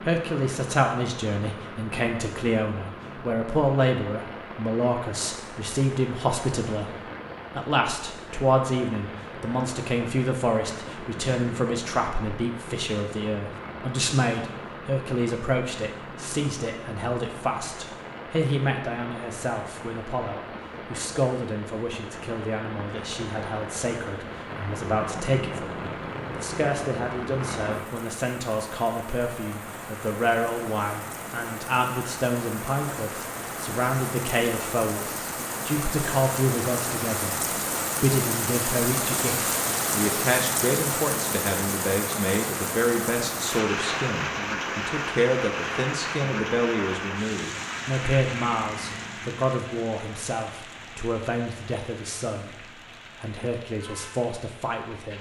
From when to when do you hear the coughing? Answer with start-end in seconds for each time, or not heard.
not heard.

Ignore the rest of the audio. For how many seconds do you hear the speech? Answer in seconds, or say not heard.
54 s.